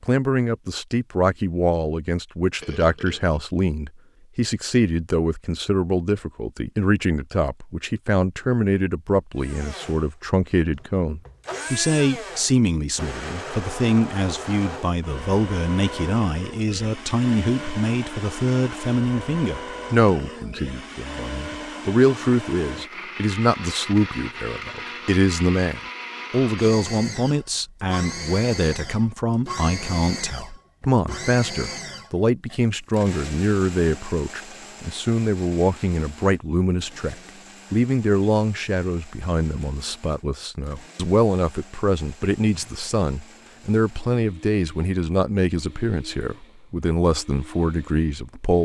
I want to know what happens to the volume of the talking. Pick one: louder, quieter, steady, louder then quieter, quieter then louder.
steady.